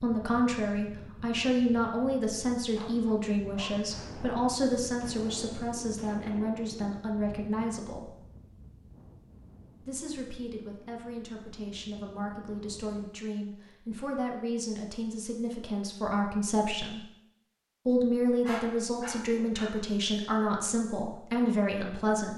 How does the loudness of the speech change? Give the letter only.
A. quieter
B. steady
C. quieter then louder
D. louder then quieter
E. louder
C.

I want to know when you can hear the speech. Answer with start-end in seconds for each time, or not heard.
0.0-8.2, 9.8-17.0, 17.9-22.3.